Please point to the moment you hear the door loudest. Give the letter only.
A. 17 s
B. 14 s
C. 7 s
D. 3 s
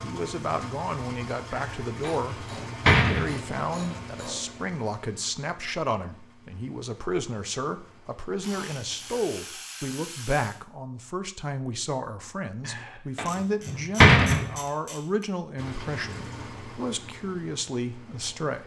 B.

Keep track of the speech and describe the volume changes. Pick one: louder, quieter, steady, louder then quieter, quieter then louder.
steady.